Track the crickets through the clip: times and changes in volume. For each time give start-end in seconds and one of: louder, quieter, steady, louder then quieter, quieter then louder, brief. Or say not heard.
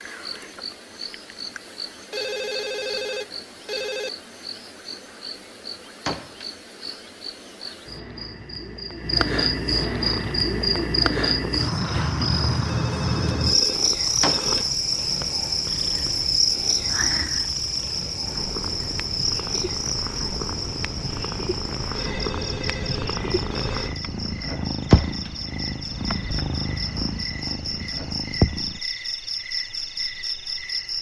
0.0-30.9 louder then quieter.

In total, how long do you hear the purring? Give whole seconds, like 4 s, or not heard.
19 s.